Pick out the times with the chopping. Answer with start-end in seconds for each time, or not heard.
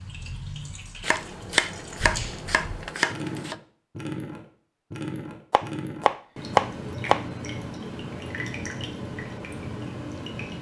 1.0-3.5, 5.5-7.2.